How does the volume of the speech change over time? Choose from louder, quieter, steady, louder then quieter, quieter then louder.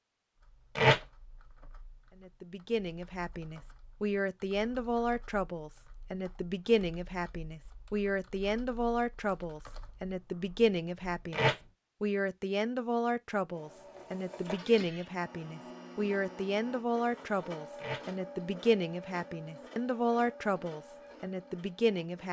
steady.